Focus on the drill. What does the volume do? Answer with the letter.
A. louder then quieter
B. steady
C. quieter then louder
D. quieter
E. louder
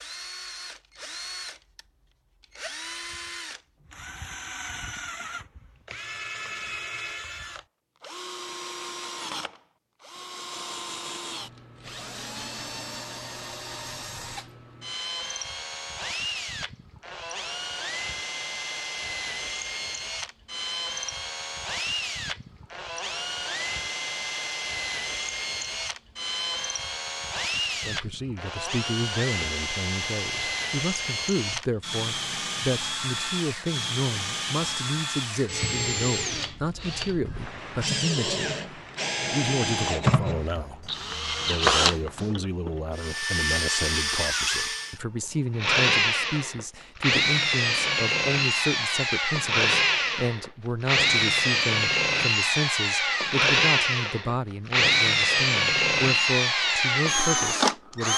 E.